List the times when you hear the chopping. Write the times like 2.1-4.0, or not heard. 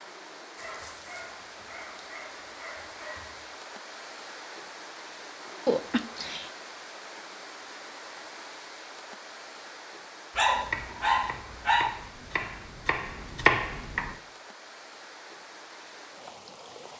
10.6-14.2.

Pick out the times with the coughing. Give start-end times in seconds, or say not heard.
5.7-6.5.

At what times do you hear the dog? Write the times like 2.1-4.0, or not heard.
0.6-3.5, 10.3-11.8.